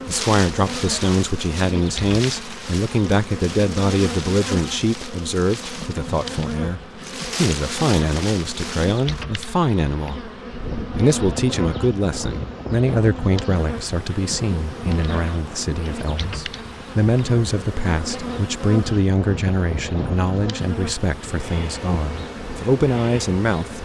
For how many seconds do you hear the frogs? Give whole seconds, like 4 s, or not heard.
not heard.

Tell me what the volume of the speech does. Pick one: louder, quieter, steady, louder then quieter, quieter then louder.
steady.